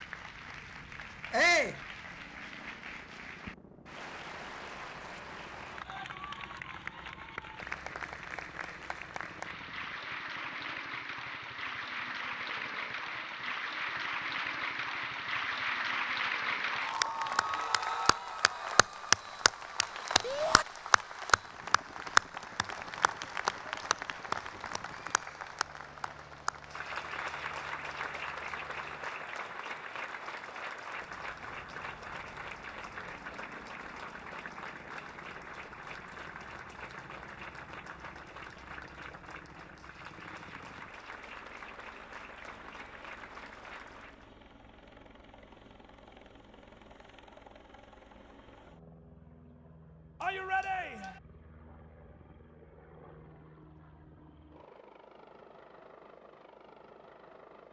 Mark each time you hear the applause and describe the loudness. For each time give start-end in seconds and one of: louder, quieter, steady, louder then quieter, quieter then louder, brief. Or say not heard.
0.0-44.3 louder then quieter.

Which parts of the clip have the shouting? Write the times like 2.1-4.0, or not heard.
1.3-1.8, 20.2-20.6, 50.2-51.1.